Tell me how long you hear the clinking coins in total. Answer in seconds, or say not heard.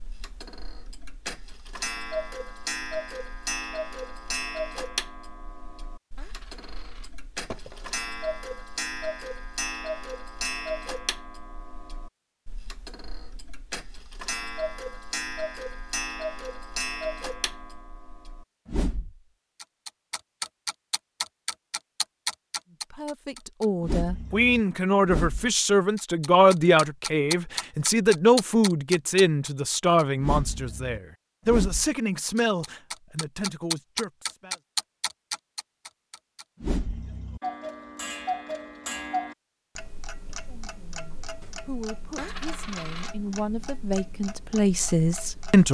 3 s.